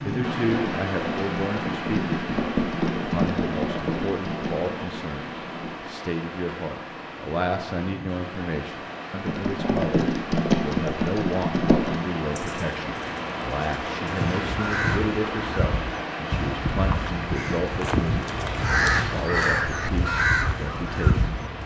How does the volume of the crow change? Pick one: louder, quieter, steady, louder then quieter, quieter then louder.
louder.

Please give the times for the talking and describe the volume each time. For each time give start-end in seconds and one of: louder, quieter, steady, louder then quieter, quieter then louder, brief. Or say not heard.
0.0-21.4 steady.